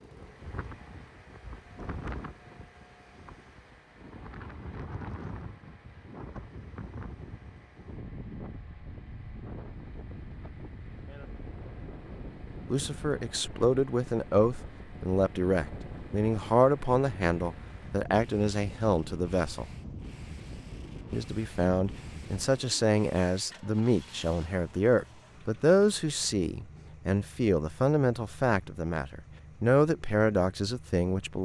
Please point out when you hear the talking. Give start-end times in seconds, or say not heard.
12.7-19.6, 21.1-31.4.